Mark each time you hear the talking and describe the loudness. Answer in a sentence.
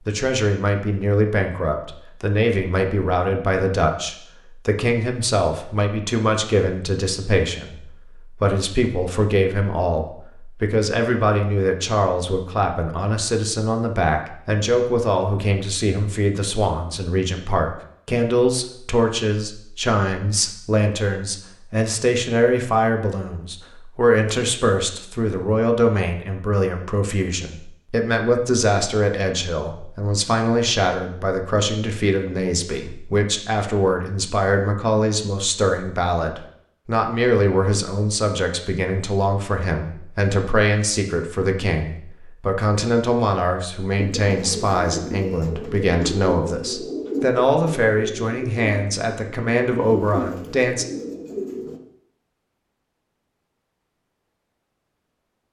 You can hear the talking from 0.1 to 50.9 s, at a steady volume.